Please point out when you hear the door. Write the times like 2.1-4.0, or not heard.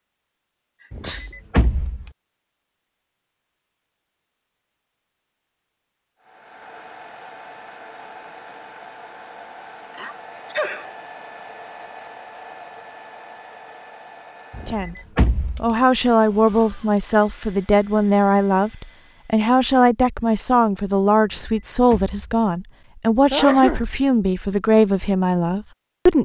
0.9-2.1, 14.5-15.8, 21.2-22.4.